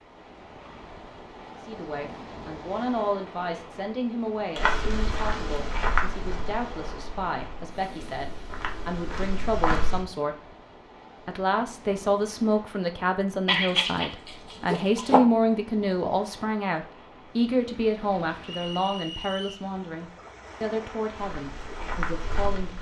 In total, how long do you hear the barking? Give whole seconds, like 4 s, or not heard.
2 s.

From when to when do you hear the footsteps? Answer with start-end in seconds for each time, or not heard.
4.5-10.0, 21.1-22.7.